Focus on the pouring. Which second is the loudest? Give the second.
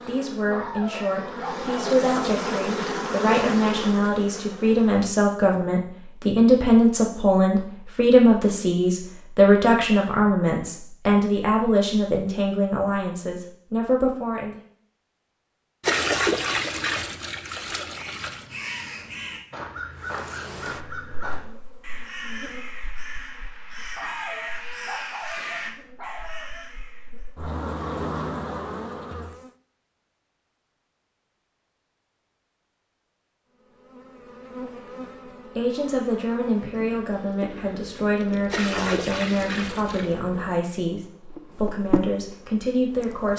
16 s.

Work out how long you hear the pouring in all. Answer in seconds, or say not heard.
4 s.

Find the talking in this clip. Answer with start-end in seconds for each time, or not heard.
0.1-14.6, 35.5-43.3.